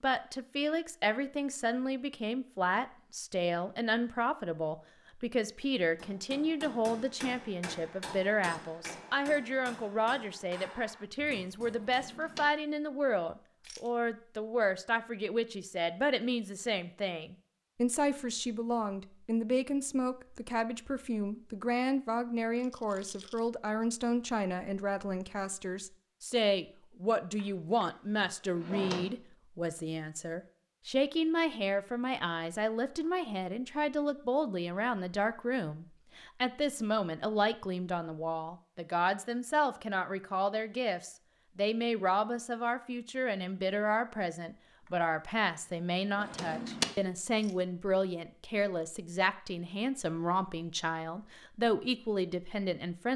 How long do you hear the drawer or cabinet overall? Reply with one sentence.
You can hear the drawer or cabinet for 3 seconds altogether.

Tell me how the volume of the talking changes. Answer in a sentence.
The volume of the talking stays about the same.